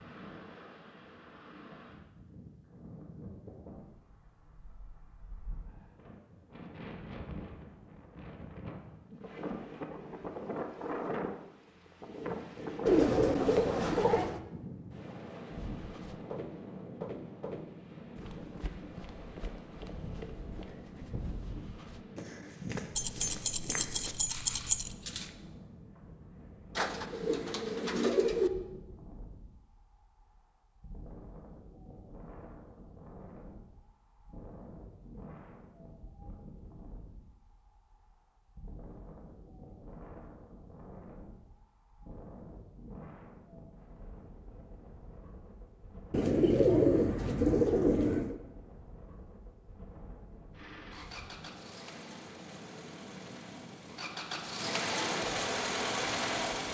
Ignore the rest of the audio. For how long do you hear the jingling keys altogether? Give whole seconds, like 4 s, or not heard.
2 s.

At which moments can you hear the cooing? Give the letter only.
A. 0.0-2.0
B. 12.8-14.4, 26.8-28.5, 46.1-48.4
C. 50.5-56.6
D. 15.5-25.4
B.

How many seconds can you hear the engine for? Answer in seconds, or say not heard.
6 s.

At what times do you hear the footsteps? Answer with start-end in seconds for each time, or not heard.
15.5-25.4.